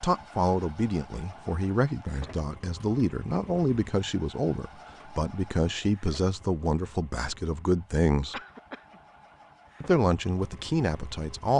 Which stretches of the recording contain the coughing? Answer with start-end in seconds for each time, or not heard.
8.3-9.0.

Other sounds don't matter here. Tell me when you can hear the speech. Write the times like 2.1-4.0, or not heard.
0.0-8.4, 9.8-11.5.